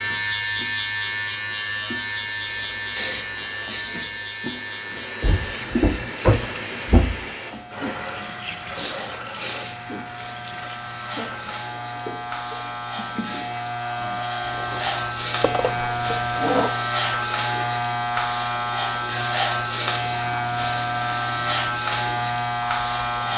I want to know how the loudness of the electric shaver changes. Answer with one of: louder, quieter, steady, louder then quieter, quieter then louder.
quieter then louder.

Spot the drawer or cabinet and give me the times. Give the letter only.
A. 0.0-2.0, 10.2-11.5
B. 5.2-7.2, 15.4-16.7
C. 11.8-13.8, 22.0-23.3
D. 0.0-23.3
B.